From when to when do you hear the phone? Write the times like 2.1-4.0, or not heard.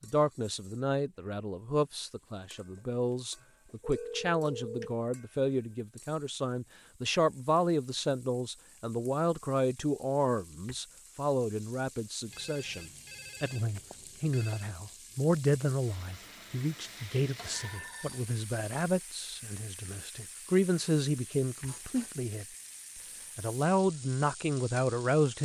3.4-5.0, 12.3-14.7, 17.5-18.3.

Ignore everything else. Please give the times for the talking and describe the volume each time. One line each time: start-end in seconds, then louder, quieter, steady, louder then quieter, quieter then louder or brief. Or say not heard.
0.0-22.4 steady
23.4-25.4 brief.